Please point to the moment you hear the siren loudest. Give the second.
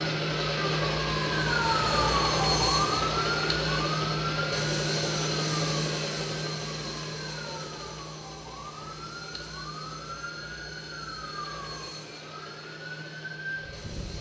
2 s.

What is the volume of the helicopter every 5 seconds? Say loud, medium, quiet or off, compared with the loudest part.
loud, medium, quiet.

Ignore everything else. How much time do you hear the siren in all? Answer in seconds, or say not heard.
14 s.